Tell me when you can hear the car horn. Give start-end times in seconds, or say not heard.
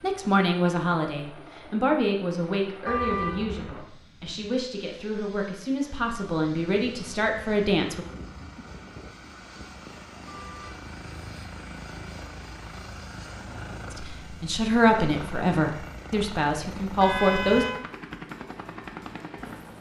2.9-3.6, 10.2-10.8, 17.0-17.8.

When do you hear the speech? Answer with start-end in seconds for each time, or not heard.
0.0-8.1, 13.9-17.6.